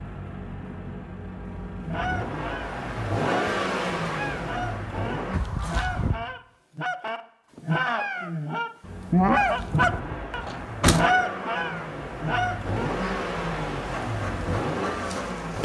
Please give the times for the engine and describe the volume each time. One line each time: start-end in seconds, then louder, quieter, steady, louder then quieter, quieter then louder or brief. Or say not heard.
0.0-5.4 louder then quieter
8.8-15.6 louder.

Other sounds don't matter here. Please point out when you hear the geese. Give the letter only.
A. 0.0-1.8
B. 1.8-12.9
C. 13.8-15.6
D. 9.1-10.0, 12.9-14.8
B.